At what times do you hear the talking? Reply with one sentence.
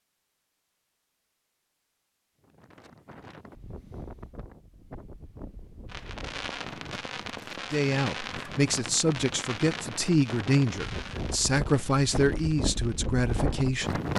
You can hear the talking from 7.7 to 14.0 s.